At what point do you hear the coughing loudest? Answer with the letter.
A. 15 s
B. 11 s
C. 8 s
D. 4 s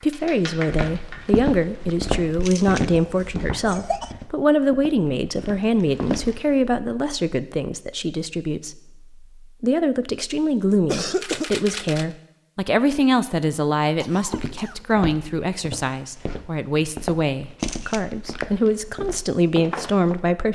B.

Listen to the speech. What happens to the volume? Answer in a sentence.
The loudness of the speech stays about the same.